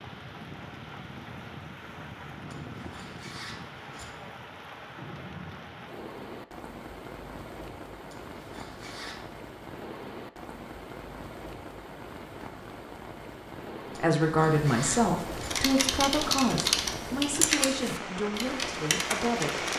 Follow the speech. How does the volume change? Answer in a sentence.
The loudness of the speech goes down.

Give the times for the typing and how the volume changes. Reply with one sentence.
The typing can be heard from 15.3 to 19.7 s, getting quieter then louder.